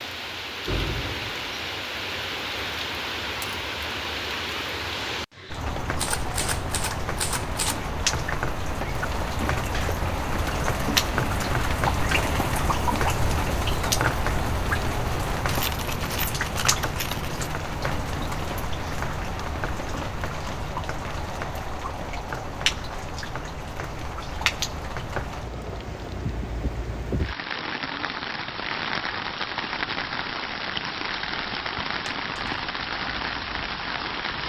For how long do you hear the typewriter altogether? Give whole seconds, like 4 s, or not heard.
2 s.